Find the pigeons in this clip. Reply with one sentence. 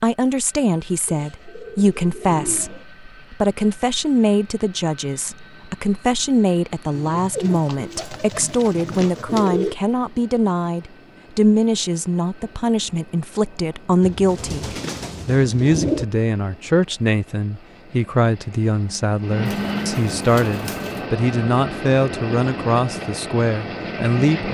You can hear the pigeons from 1.1 to 2.9 s, from 7.0 to 9.8 s, from 14.0 to 16.1 s and from 19.4 to 21.1 s.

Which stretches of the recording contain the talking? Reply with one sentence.
You can hear the talking from 0.0 to 24.4 s.